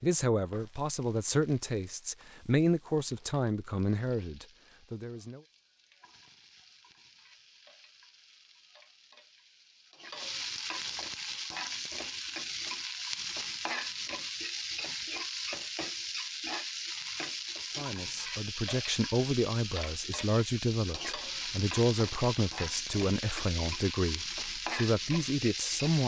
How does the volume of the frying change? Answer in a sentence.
The volume of the frying goes up.